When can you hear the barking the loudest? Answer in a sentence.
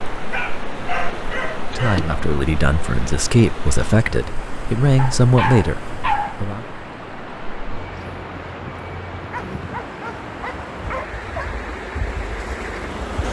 The loudest moment of the barking is at 6 seconds.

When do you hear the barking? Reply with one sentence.
The barking can be heard from 0.3 to 2.1 s, from 5.0 to 6.4 s and from 9.3 to 11.6 s.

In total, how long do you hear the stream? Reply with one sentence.
The stream can be heard for 13 seconds in total.